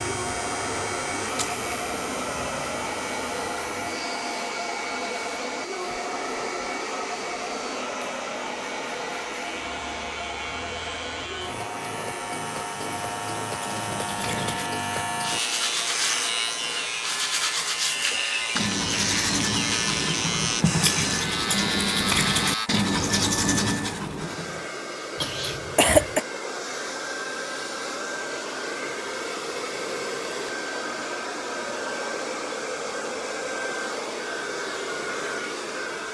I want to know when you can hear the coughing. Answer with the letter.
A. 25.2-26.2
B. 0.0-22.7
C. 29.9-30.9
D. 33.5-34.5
A.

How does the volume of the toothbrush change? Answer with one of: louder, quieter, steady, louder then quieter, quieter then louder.
louder.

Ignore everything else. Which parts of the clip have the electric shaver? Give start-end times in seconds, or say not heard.
0.0-22.7.